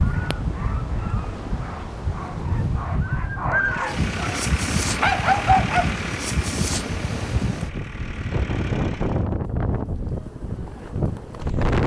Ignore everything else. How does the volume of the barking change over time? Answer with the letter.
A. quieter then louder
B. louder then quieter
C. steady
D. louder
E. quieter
D.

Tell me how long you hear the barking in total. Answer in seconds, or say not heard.
7 s.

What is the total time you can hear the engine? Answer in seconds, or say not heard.
6 s.